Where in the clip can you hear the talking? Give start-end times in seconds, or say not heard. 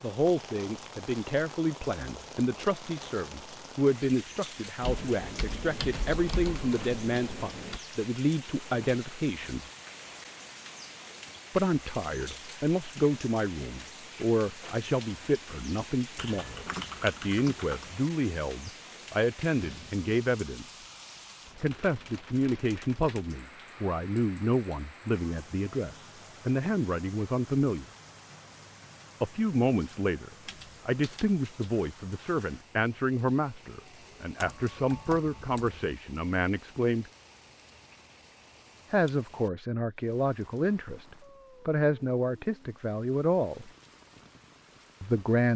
0.0-9.7, 11.6-20.8, 21.6-27.9, 29.2-37.1, 38.9-43.7, 45.0-45.5.